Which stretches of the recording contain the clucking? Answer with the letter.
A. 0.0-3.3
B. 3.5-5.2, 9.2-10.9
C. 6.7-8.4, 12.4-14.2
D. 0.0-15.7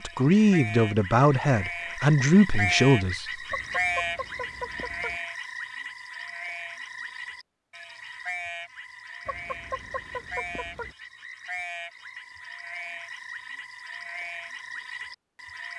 B.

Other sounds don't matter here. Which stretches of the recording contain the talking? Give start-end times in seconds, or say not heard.
0.0-3.3.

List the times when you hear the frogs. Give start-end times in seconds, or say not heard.
0.0-15.7.